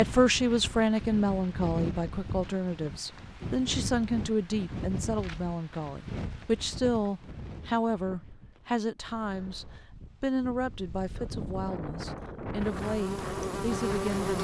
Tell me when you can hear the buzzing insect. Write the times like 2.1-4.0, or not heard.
12.6-14.3.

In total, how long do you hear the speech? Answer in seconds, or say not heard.
14 s.